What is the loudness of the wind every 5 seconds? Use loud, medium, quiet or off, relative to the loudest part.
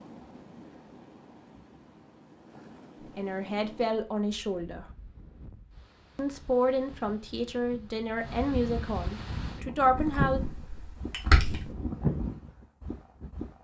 quiet, medium, loud.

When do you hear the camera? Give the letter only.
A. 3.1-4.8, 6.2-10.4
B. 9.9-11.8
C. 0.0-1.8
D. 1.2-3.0
B.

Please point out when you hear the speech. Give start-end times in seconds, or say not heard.
3.1-4.8, 6.2-10.4.